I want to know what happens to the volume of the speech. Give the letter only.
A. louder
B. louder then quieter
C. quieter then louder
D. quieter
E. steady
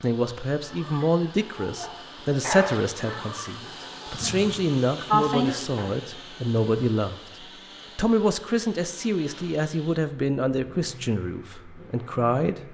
E.